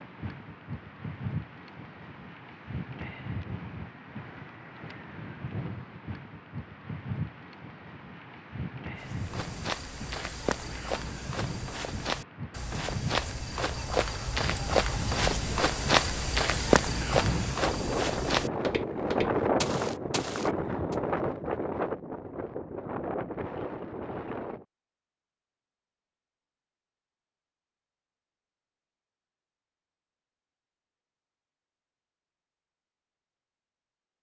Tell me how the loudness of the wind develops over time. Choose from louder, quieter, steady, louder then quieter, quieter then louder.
louder.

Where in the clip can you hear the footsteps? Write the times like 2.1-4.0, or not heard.
9.0-20.9.